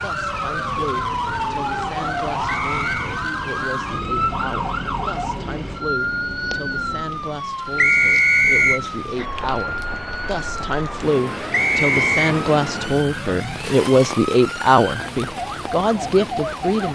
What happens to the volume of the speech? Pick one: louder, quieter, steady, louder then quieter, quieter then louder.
louder.